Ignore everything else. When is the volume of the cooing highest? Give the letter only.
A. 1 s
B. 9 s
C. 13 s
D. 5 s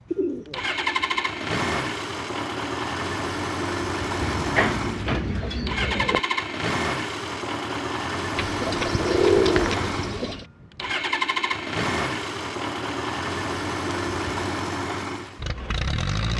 B.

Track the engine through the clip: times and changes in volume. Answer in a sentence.
The engine can be heard from 0.0 to 16.3 s, at a steady volume.